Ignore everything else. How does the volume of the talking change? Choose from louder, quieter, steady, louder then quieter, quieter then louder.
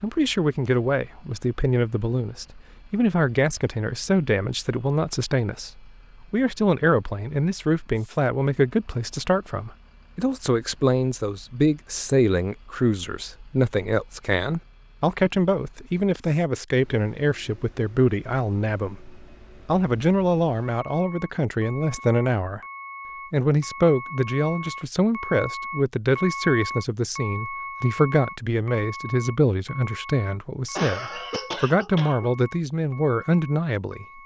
steady.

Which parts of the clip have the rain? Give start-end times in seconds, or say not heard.
not heard.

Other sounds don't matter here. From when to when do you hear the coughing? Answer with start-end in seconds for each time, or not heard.
30.8-32.3.